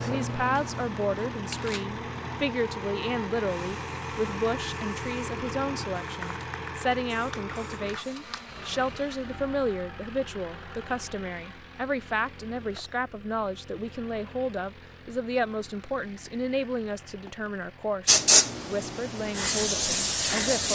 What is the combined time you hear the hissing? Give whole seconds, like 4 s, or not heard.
11 s.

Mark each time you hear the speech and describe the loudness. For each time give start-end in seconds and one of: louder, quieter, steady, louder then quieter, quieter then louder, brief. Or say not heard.
0.0-20.7 steady.